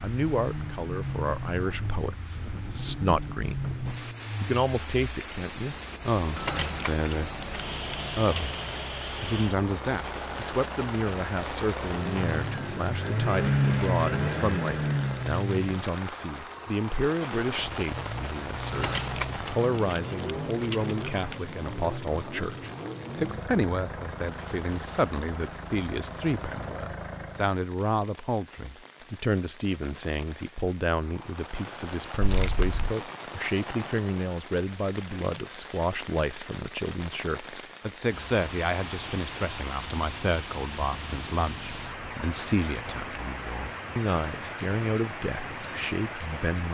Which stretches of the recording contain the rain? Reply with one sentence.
You can hear the rain from 0.0 to 46.7 s.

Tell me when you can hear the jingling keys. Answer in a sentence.
You can hear the jingling keys from 6.3 to 8.8 s, from 18.7 to 21.4 s and from 32.2 to 33.0 s.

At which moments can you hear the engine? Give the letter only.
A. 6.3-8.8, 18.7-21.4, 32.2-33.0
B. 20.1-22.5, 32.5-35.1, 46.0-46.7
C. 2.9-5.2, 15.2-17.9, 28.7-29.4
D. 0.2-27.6
D.